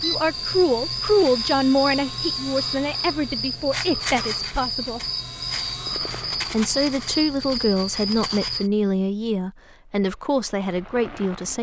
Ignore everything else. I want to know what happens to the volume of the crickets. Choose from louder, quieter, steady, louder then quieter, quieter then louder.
steady.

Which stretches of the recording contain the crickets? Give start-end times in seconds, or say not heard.
0.0-8.7.